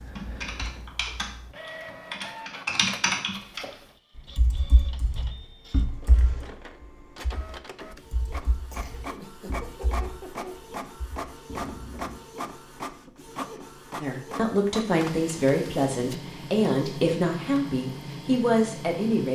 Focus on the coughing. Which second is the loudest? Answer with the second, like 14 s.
10 s.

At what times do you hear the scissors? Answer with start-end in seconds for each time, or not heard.
not heard.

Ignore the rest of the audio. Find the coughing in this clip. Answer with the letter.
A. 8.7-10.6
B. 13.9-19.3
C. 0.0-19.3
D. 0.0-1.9
A.